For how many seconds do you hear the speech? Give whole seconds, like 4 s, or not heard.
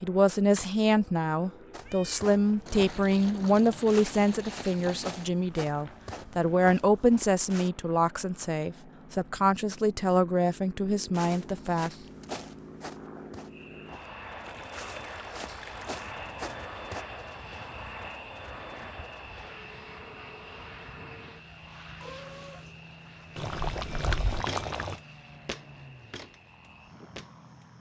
12 s.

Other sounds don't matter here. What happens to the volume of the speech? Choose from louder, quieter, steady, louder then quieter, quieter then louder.
steady.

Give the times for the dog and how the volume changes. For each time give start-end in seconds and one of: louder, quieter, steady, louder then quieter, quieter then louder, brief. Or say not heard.
not heard.